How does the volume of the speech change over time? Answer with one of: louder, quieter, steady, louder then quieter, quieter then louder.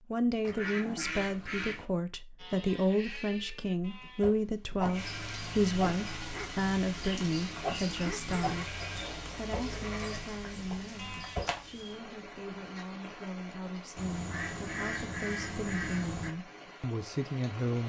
quieter then louder.